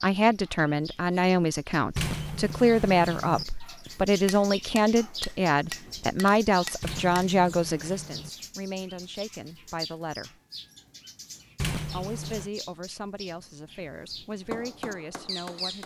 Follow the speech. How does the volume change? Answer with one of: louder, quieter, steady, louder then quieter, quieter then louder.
quieter.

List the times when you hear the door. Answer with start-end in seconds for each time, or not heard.
1.9-3.5, 6.8-8.3, 11.6-12.5.